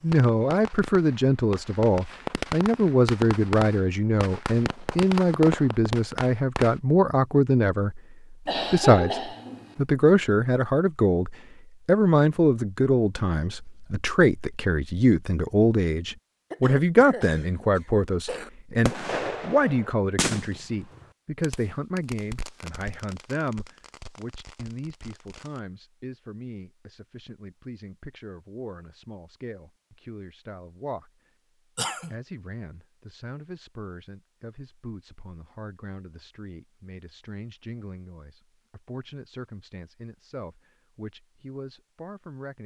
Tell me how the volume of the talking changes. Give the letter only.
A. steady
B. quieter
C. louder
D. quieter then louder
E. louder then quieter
B.